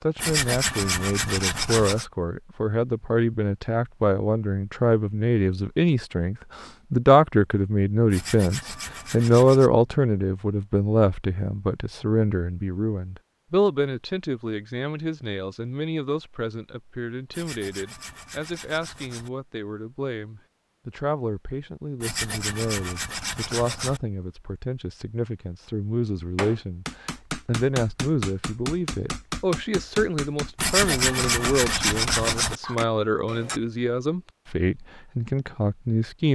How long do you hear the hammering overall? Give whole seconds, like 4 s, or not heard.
7 s.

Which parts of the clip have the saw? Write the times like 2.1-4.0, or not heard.
0.1-2.0, 8.1-9.7, 17.3-19.3, 22.0-24.0, 30.6-32.5.